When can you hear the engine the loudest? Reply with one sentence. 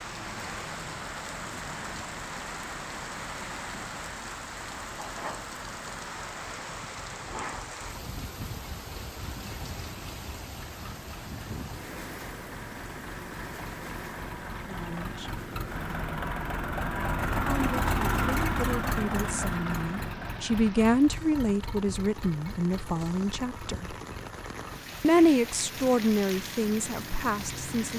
The loudest moment of the engine is at 18 seconds.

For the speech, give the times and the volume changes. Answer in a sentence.
You can hear the speech briefly from 14.7 to 15.3 s; from 17.4 to 23.9 s, getting louder then quieter; and briefly from 25.0 to 27.9 s.